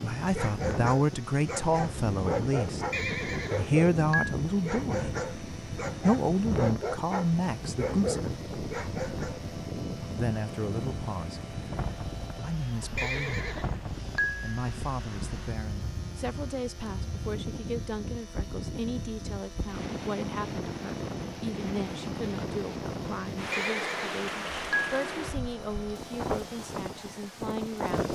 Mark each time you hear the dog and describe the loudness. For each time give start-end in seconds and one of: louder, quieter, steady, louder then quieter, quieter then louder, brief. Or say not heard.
0.3-9.4 steady.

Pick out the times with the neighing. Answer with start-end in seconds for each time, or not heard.
2.9-4.3, 12.9-14.4, 23.5-24.9.